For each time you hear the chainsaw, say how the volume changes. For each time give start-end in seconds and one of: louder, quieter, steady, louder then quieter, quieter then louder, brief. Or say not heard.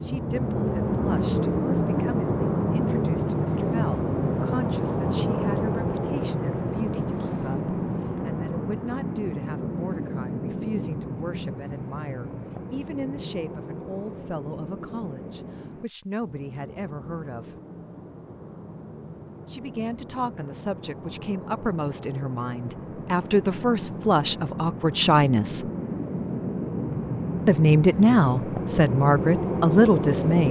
not heard.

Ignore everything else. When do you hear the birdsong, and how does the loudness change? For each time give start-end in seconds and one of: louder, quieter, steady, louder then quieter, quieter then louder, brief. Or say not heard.
0.0-30.4 quieter then louder.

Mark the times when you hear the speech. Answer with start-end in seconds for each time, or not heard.
0.0-17.6, 19.4-25.6, 27.4-30.4.